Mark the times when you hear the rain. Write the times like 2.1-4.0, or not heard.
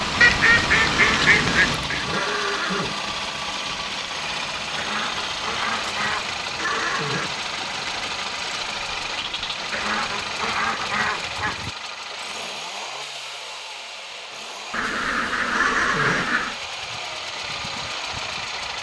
0.0-11.3.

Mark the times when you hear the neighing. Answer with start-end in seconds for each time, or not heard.
0.9-3.0, 6.5-7.3, 15.5-16.3.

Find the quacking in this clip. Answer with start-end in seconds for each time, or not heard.
0.2-2.0, 4.8-6.4, 9.7-11.7, 14.7-16.6.